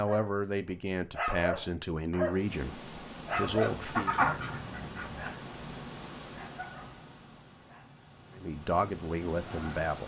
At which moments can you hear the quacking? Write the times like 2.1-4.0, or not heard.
3.5-5.2.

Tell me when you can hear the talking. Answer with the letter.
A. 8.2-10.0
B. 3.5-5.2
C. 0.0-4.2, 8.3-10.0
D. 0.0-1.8
C.